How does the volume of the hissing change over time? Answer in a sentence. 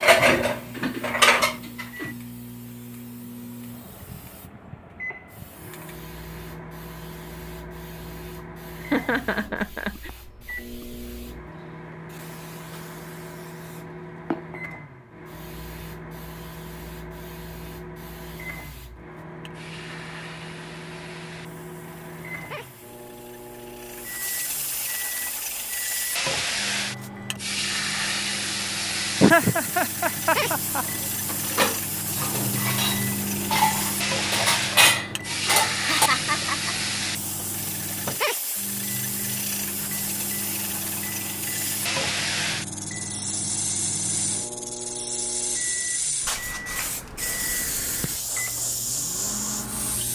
The volume of the hissing goes up.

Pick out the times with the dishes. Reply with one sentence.
The dishes can be heard from 0.0 to 2.1 s and from 30.9 to 36.5 s.